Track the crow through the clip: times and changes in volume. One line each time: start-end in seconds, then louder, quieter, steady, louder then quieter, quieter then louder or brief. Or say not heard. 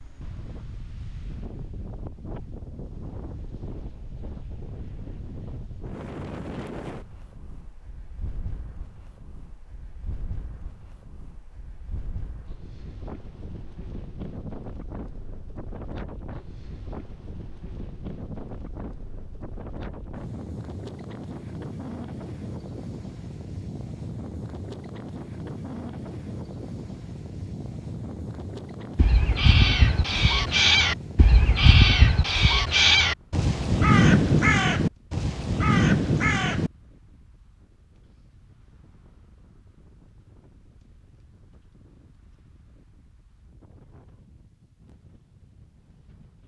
28.9-36.7 steady.